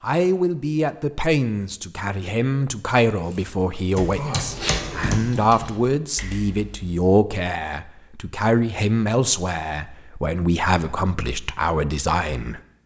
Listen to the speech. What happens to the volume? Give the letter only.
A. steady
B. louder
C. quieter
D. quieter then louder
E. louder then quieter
A.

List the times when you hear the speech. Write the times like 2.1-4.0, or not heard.
0.0-12.6.